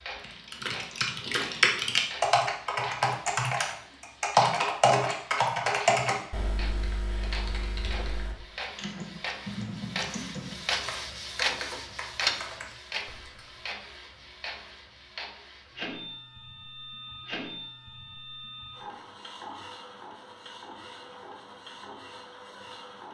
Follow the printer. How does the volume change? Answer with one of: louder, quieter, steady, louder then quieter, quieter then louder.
louder then quieter.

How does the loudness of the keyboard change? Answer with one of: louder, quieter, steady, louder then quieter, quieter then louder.
quieter.